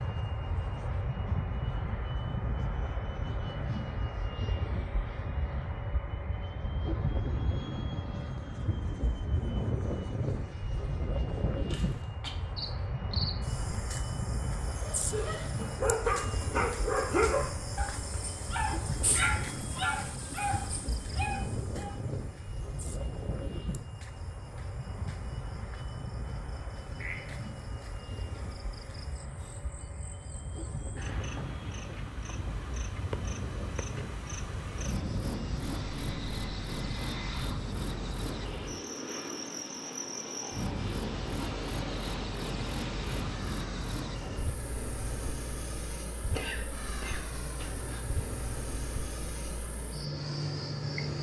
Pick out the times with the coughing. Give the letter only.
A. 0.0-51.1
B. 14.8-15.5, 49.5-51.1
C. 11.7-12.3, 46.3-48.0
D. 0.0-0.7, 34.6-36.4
C.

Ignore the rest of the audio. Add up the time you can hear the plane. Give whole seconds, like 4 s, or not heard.
51 s.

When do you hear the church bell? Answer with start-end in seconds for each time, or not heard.
not heard.